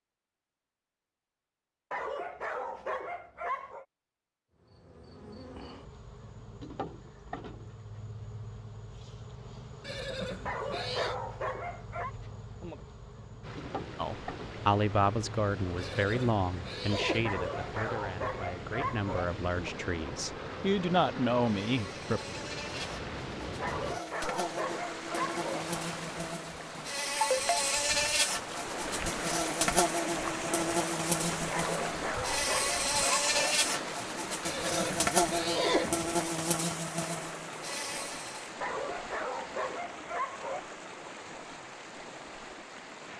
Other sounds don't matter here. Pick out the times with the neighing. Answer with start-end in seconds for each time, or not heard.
9.8-11.2, 15.8-17.4, 34.4-36.1.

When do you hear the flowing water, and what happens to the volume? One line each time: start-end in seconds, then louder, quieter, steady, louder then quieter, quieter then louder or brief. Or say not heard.
13.4-43.1 louder then quieter.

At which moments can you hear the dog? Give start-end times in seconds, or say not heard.
1.9-3.9, 10.4-12.1, 17.2-19.2, 23.6-25.6, 31.5-33.5, 38.6-40.6.